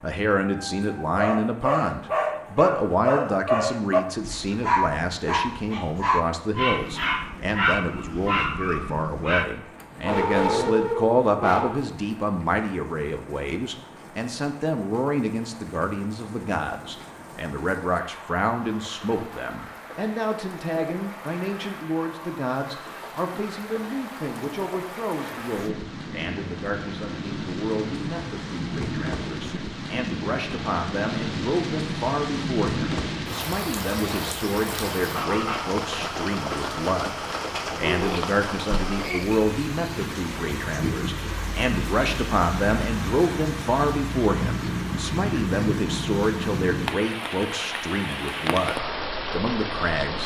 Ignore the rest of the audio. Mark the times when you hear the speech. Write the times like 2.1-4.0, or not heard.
0.0-50.2.